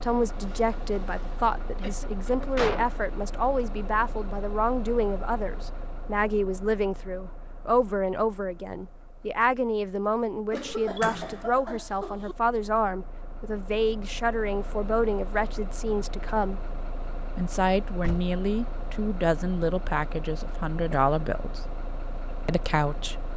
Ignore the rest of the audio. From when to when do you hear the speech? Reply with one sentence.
The speech can be heard from 0.0 to 16.6 s, from 17.4 to 21.6 s and from 22.4 to 23.3 s.